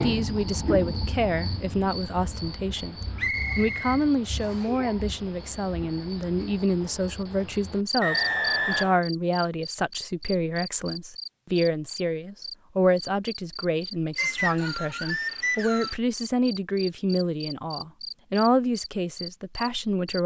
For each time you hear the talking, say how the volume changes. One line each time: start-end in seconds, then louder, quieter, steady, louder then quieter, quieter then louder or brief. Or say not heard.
0.0-3.0 brief
3.5-20.2 steady.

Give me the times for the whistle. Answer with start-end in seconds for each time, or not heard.
3.1-4.7, 8.0-9.0, 14.2-16.0.